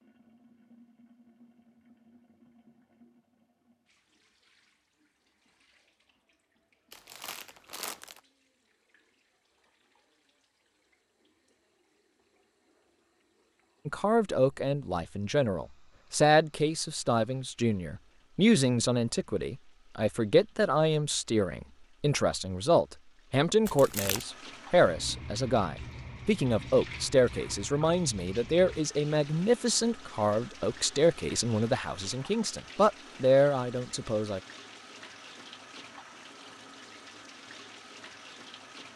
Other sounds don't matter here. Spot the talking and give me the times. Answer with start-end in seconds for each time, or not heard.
13.8-34.4.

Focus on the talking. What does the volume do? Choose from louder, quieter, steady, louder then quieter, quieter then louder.
steady.